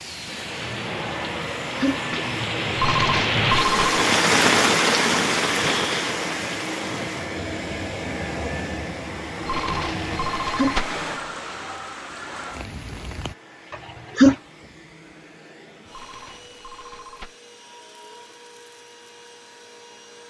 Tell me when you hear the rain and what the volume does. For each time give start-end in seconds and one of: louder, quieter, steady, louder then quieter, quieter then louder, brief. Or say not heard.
0.0-13.3 louder then quieter.